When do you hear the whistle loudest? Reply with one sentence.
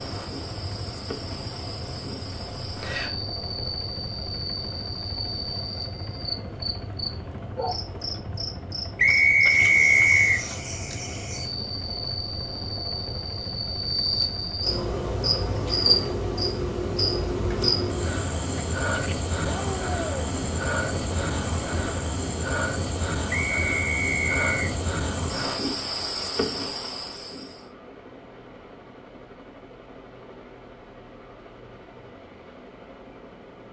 The loudest moment of the whistle is at 10 seconds.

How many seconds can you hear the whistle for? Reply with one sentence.
You can hear the whistle for 3 seconds altogether.